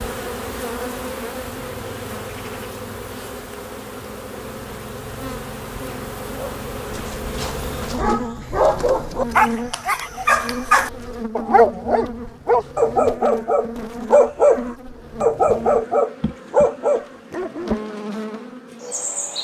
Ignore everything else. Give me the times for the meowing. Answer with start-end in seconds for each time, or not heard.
not heard.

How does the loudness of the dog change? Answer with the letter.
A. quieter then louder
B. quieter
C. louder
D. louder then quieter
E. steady
C.